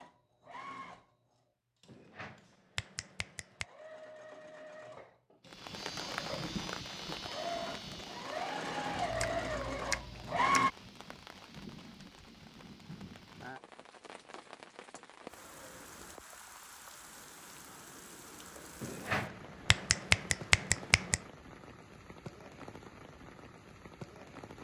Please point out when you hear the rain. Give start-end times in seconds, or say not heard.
5.5-24.6.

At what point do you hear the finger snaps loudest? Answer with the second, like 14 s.
20 s.